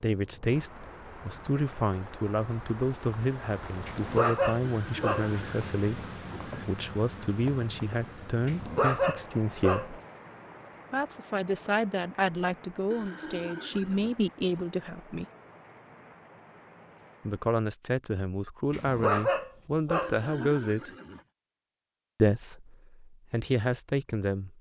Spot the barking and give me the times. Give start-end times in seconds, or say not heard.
3.9-5.3, 8.4-10.0, 18.7-20.5.